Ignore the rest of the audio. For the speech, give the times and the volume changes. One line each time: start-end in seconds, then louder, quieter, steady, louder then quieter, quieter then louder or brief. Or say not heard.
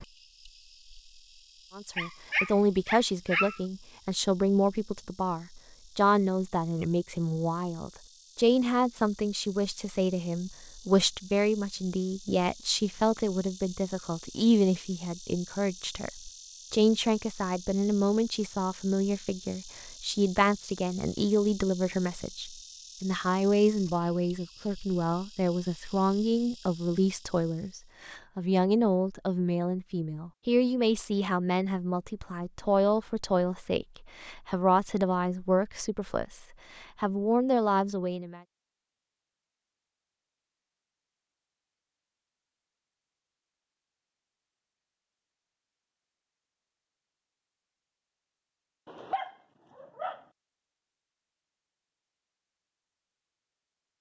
1.8-38.4 steady.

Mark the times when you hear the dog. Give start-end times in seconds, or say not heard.
1.9-3.6, 48.9-50.2.